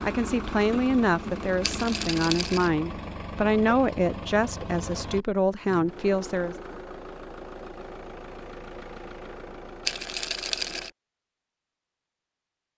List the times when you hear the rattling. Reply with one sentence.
The rattling can be heard from 1.6 to 2.7 s and from 9.8 to 10.9 s.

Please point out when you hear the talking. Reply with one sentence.
The talking can be heard from 0.0 to 6.5 s.